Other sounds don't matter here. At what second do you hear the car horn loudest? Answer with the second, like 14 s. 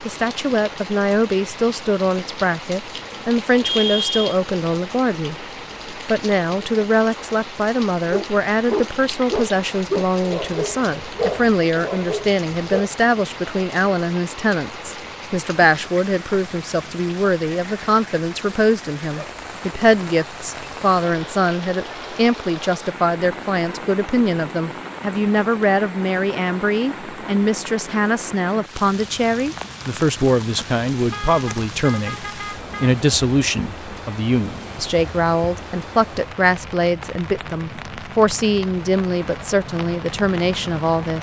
4 s.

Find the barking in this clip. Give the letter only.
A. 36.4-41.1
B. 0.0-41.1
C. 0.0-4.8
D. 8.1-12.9
D.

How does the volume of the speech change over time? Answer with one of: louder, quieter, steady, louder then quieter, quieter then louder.
steady.